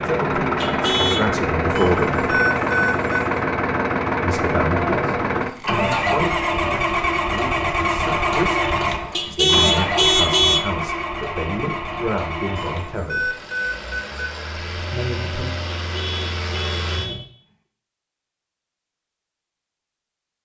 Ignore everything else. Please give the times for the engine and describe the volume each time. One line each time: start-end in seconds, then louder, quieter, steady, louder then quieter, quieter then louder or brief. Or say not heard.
0.0-17.2 quieter.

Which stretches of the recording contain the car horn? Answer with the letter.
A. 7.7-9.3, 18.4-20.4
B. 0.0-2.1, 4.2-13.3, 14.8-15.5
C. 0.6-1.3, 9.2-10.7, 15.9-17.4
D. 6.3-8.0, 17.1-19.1
C.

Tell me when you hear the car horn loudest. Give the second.
10 s.